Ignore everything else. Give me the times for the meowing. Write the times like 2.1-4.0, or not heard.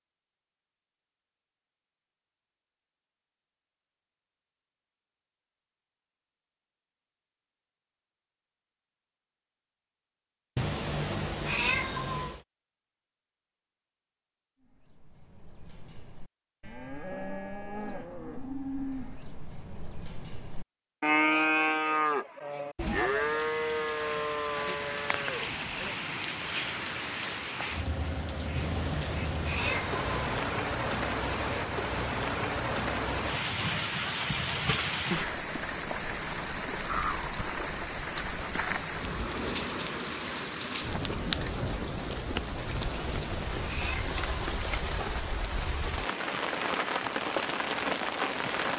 10.6-12.4, 28.6-30.4, 42.8-44.5.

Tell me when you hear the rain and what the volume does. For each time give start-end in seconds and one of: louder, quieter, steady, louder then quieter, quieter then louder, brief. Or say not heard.
22.8-48.7 steady.